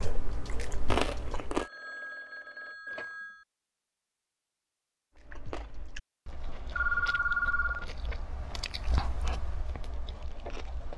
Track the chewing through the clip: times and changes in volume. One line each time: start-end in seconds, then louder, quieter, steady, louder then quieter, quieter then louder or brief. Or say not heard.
0.0-1.6 brief
5.2-10.9 louder then quieter.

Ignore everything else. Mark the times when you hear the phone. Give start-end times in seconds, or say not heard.
1.6-3.5, 6.8-7.8.